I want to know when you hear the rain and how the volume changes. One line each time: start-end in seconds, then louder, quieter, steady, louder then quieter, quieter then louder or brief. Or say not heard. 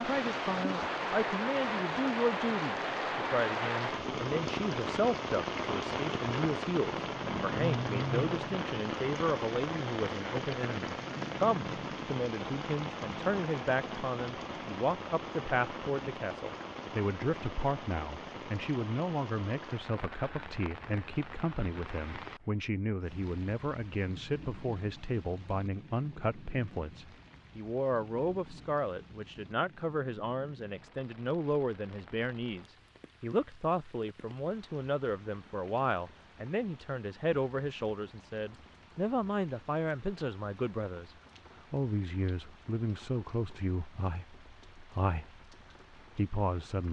0.0-46.8 quieter.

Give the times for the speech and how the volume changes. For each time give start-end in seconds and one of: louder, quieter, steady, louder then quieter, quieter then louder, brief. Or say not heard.
0.0-46.8 steady.